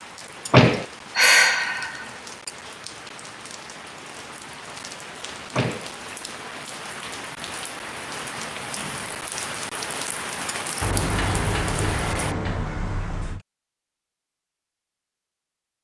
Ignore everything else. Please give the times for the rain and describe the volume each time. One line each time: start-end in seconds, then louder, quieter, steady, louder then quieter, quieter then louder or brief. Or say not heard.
0.0-12.3 louder.